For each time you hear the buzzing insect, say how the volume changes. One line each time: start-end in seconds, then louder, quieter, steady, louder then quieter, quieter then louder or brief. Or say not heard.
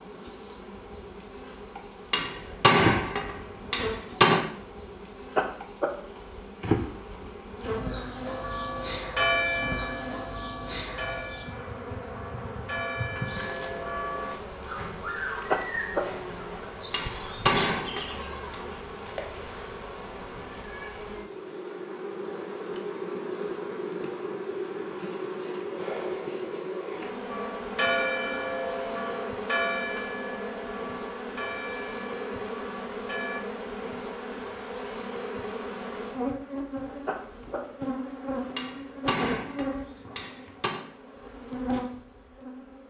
0.0-42.8 steady.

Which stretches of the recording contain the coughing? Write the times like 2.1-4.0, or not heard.
5.3-5.9, 15.5-16.0, 37.0-37.6.